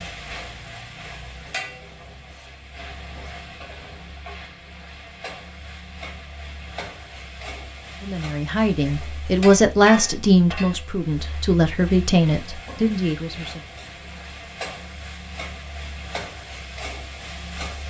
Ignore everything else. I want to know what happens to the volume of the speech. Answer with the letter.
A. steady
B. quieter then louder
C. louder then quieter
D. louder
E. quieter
C.